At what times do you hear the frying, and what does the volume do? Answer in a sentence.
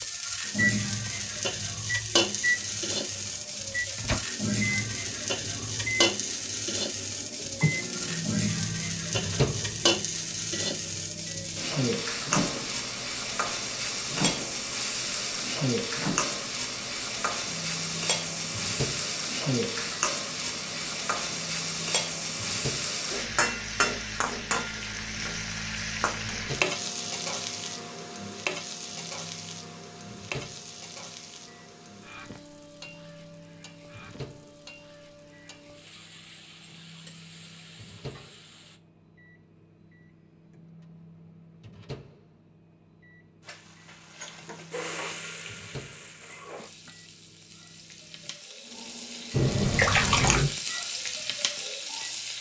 The frying can be heard from 0.0 to 38.8 s, getting quieter; and from 43.5 to 52.3 s, getting quieter then louder.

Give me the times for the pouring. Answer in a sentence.
You can hear the pouring from 49.3 to 50.5 s.